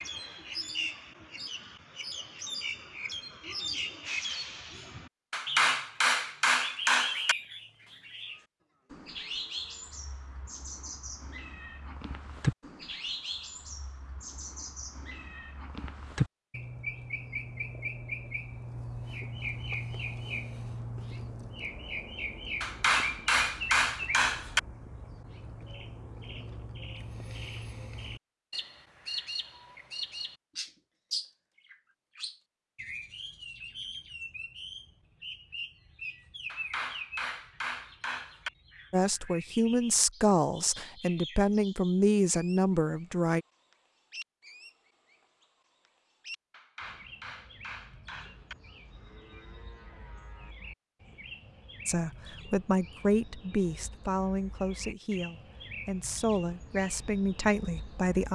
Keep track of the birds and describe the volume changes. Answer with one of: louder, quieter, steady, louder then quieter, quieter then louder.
quieter.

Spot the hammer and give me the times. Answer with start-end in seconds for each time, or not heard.
5.3-7.3, 22.6-24.6, 36.5-38.5, 46.5-48.5.